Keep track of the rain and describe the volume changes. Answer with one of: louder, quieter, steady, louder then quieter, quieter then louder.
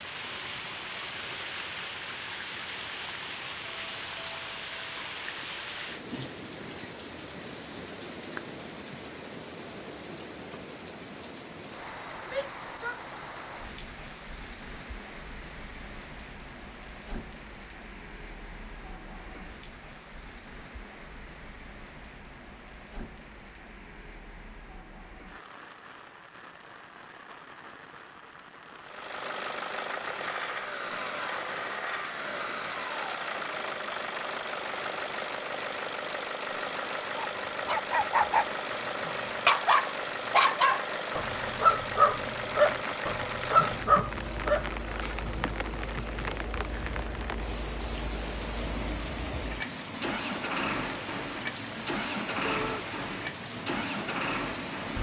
quieter then louder.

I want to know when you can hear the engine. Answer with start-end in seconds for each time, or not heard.
28.8-54.9.